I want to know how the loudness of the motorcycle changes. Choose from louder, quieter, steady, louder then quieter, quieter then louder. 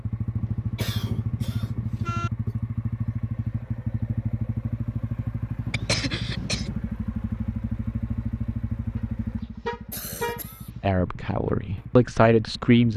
quieter.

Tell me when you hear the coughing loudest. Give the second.
6 s.